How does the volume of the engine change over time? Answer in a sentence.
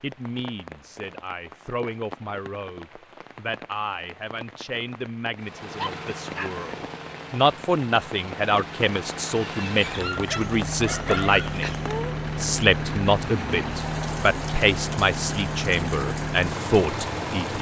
The volume of the engine goes up.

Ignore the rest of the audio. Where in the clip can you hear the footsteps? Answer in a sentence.
You can't hear the footsteps here.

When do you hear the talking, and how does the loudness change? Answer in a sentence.
You can hear the talking from 0.0 to 17.5 s, getting louder.